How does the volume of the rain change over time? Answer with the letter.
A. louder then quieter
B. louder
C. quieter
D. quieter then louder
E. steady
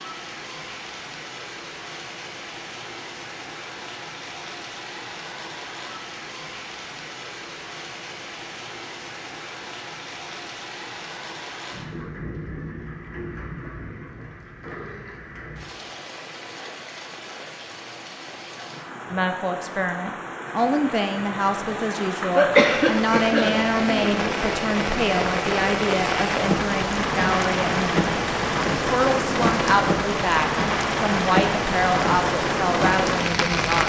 B.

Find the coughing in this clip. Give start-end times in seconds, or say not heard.
22.4-24.4.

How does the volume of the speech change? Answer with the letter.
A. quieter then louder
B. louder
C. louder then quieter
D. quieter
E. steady
E.